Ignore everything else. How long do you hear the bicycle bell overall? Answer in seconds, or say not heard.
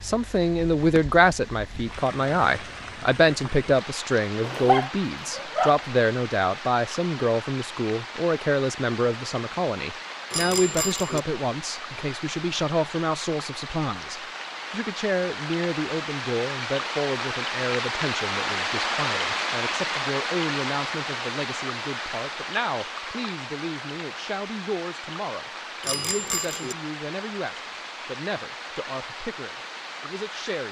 2 s.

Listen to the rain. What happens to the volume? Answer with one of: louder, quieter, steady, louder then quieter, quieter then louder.
louder then quieter.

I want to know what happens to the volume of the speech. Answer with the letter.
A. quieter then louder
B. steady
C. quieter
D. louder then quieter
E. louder
C.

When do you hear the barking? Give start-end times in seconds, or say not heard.
4.4-5.8.